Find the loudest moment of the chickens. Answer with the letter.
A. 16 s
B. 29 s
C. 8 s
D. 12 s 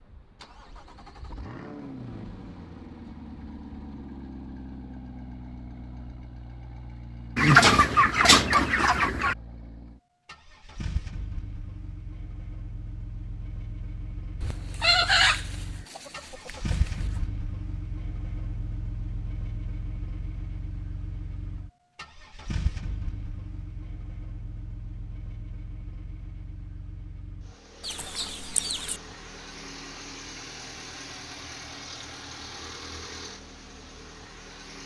C.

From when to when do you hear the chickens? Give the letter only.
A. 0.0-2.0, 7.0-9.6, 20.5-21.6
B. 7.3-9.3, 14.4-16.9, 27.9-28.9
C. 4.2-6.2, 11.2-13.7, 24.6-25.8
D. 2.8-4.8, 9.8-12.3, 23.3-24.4
B.